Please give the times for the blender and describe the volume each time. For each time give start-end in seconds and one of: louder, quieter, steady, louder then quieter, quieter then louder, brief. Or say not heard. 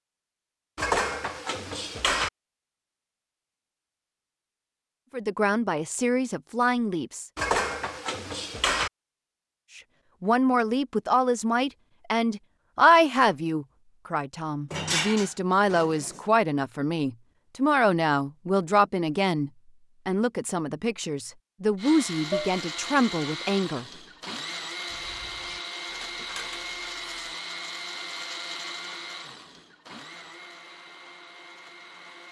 21.8-32.2 quieter.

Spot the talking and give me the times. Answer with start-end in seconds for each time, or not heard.
5.1-7.2, 9.8-24.3.